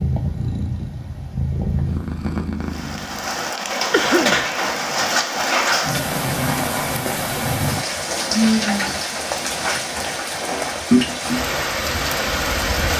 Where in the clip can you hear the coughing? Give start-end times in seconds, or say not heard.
3.9-4.5.